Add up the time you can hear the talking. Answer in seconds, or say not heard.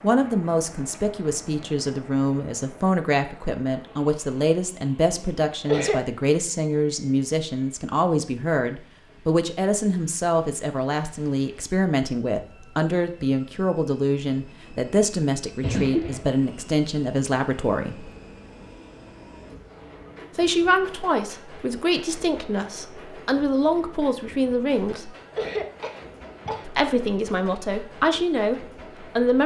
26 s.